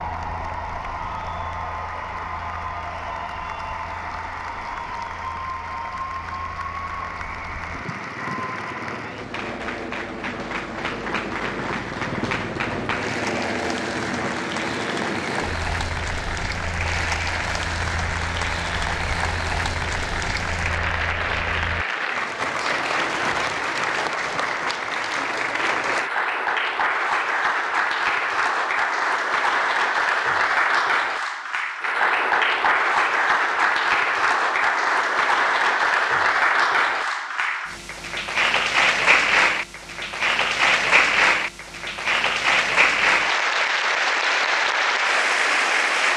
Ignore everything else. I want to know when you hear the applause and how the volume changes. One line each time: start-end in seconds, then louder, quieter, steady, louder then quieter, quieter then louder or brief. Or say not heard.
0.0-46.1 louder.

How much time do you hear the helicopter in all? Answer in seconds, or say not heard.
22 s.